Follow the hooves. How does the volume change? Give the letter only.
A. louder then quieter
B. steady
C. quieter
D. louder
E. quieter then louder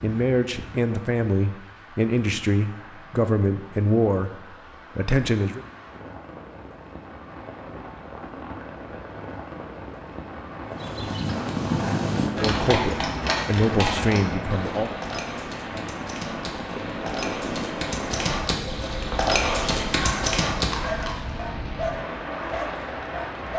E.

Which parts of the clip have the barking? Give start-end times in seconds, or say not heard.
19.9-23.5.